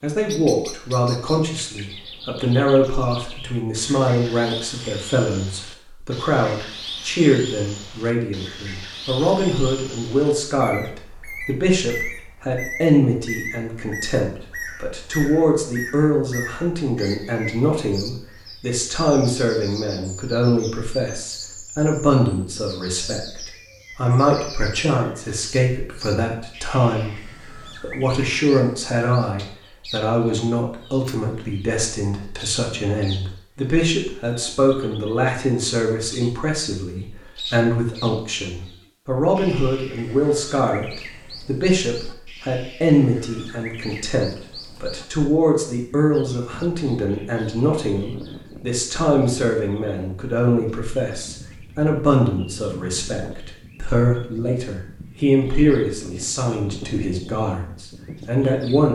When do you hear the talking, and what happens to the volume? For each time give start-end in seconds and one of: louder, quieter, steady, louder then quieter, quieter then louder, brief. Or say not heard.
0.0-58.9 steady.